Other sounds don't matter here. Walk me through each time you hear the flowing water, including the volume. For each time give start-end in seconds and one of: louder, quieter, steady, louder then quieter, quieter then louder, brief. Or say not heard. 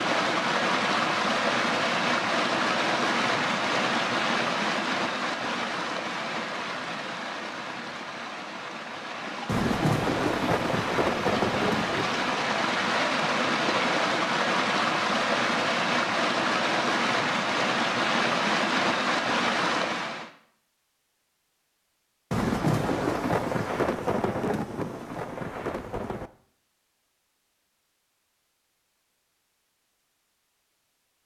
0.0-20.3 quieter then louder.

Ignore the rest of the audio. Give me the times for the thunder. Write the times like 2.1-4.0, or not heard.
9.4-12.3, 22.3-26.3.